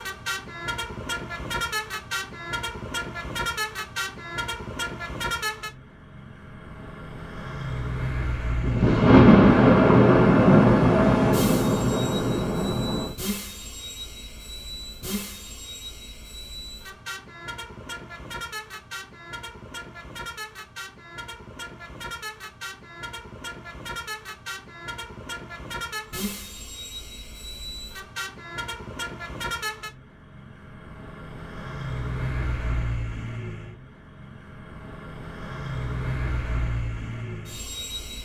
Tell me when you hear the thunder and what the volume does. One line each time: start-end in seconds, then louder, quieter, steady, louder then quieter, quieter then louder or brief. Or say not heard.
8.6-13.2 quieter.